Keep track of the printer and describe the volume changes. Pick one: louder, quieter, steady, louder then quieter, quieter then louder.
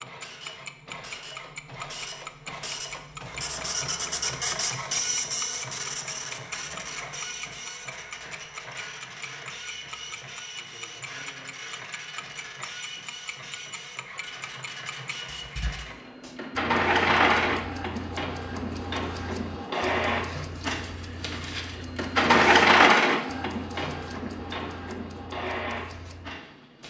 quieter then louder.